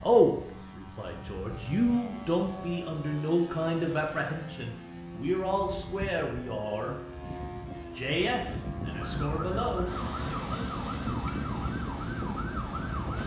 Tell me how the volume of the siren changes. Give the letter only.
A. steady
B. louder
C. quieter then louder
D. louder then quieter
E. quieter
A.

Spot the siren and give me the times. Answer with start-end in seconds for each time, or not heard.
8.8-13.2.